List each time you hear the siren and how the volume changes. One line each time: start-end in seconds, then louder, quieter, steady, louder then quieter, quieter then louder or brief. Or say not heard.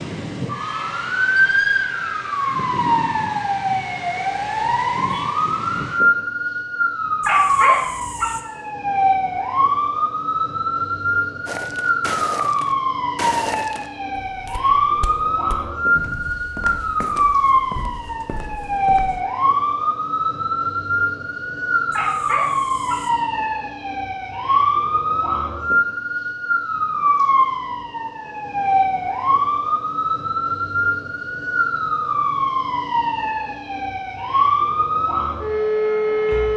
0.0-36.5 steady.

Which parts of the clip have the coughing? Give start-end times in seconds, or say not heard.
not heard.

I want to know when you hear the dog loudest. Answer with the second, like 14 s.
8 s.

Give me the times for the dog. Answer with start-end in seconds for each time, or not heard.
7.2-8.4, 21.9-23.1.